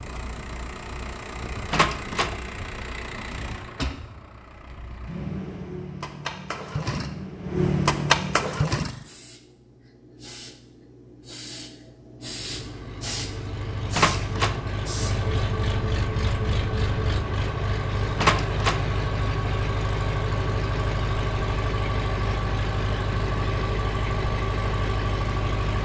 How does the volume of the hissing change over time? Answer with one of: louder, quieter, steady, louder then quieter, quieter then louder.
louder.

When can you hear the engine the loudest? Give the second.
8 s.